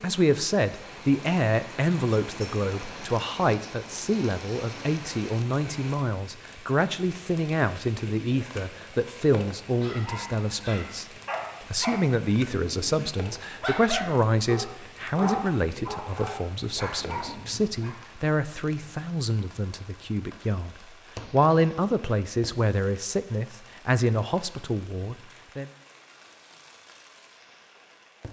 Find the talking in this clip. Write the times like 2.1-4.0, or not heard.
0.0-11.1, 11.7-25.7.